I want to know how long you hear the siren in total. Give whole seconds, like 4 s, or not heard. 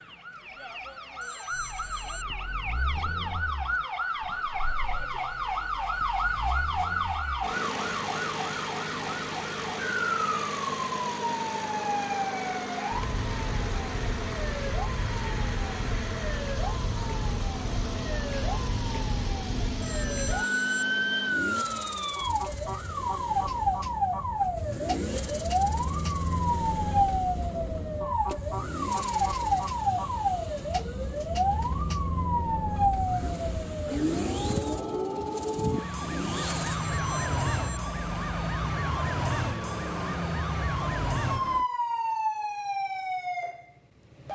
44 s.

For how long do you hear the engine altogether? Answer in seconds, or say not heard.
40 s.